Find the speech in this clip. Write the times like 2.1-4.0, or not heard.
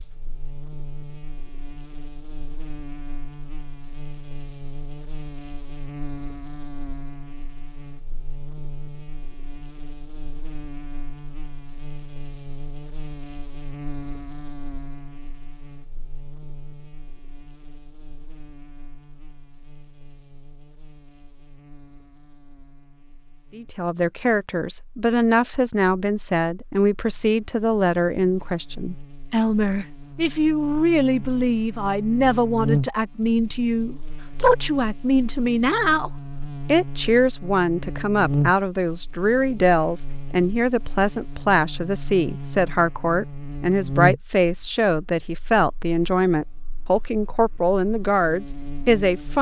23.6-49.3.